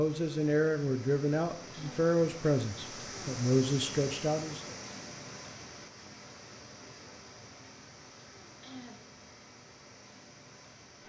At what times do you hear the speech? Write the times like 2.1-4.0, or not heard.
0.0-4.8.